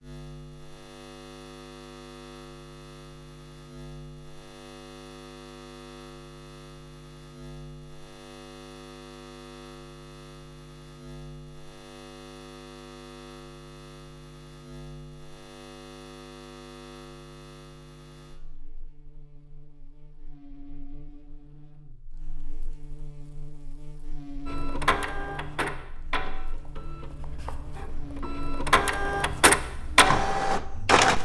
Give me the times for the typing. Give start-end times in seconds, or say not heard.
not heard.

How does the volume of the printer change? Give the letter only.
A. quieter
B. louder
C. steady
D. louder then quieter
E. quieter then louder
E.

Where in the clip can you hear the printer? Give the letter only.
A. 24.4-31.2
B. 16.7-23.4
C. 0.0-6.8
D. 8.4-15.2
A.